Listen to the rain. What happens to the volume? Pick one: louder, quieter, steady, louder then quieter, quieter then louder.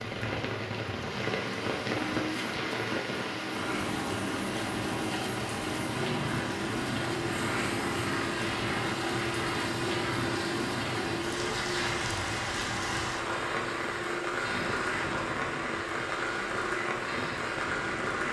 steady.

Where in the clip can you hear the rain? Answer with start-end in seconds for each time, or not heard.
0.0-18.2.